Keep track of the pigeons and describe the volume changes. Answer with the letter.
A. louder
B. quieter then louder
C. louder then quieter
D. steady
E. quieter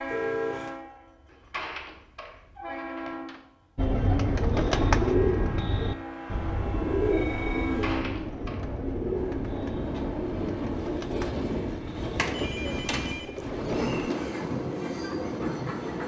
E.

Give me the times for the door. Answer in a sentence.
You can hear the door from 1.3 to 3.4 s, from 7.6 to 8.7 s and from 12.2 to 13.2 s.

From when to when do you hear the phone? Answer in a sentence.
The phone can be heard from 0.1 to 0.7 s, from 7.1 to 7.8 s and from 12.3 to 14.3 s.